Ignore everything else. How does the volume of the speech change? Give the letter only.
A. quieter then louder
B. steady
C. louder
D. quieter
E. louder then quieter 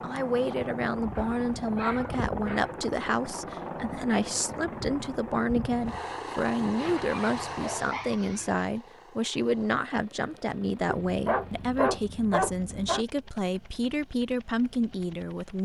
B.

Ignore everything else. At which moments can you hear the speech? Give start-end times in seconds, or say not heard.
0.0-15.6.